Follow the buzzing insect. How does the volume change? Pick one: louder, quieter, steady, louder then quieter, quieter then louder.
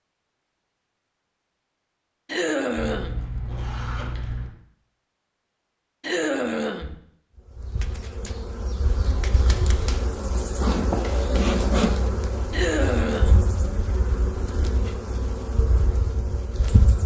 louder then quieter.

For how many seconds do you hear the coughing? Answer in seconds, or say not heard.
3 s.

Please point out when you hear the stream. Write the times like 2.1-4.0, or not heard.
not heard.